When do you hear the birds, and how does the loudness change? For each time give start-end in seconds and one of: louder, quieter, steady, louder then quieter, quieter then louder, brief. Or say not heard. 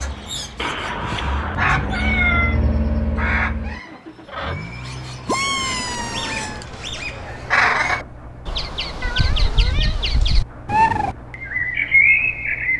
0.0-12.7 louder.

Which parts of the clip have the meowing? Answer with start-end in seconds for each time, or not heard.
0.6-2.6, 5.2-6.7, 9.0-10.1.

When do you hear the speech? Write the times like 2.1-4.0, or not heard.
not heard.